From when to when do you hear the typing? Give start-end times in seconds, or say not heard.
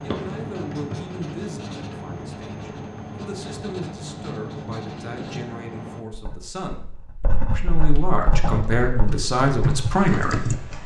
8.2-10.8.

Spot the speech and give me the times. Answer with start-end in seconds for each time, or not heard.
0.0-6.8, 7.5-10.5.